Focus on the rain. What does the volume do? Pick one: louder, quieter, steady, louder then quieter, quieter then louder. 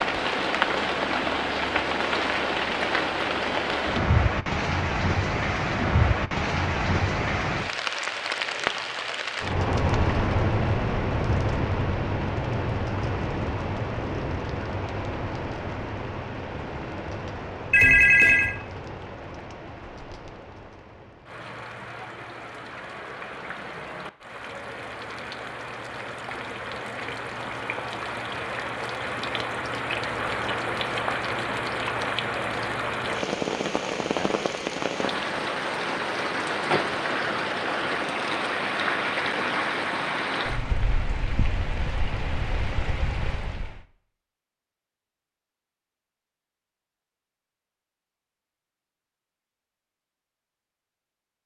quieter then louder.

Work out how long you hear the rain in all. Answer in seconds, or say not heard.
44 s.